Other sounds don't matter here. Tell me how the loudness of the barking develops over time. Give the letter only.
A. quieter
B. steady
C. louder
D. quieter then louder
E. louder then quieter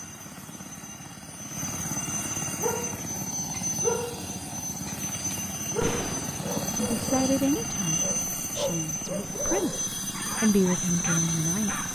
A.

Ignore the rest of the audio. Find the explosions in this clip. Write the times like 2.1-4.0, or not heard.
5.8-6.4.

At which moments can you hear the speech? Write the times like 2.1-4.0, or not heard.
6.8-11.8.